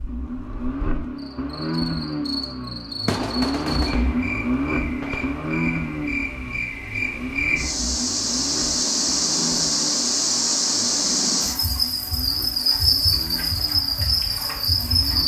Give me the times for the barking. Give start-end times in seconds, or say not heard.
not heard.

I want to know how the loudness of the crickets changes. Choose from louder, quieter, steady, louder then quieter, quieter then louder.
louder.